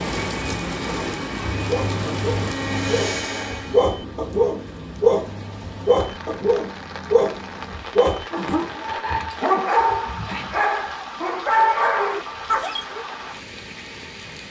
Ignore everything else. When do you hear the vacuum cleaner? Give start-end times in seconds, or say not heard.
0.1-4.0.